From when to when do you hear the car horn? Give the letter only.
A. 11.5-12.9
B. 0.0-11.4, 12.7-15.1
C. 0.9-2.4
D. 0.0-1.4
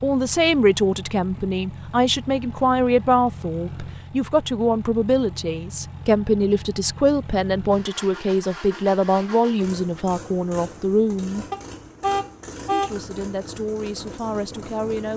A.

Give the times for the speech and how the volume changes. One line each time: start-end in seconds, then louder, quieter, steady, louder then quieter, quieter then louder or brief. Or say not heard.
0.0-11.4 steady
12.7-15.1 brief.